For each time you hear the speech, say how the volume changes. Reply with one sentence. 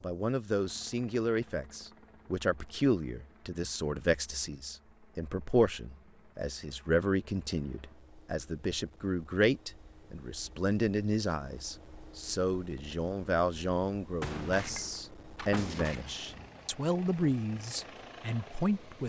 The speech can be heard from 0.0 to 19.0 s, at a steady volume.